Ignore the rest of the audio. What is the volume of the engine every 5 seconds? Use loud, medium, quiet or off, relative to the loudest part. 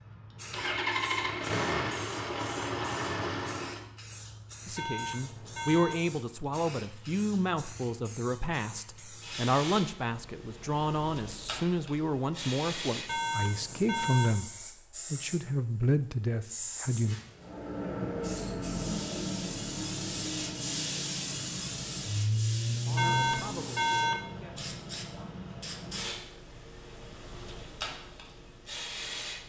loud, off, off, loud, loud, off.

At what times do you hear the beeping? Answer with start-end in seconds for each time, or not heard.
4.8-6.0, 13.1-14.3, 22.9-24.2.